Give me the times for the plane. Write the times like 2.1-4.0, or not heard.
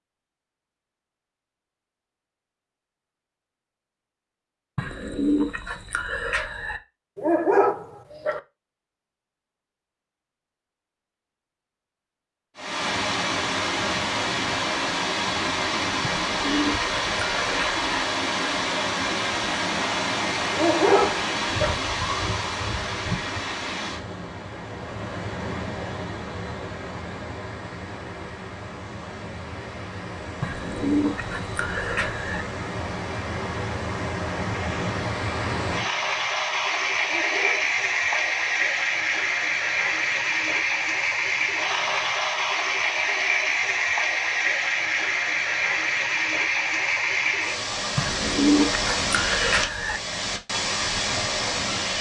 not heard.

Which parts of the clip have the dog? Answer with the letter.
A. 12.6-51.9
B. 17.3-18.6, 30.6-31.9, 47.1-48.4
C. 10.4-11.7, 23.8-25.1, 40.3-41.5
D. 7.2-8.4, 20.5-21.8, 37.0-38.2
D.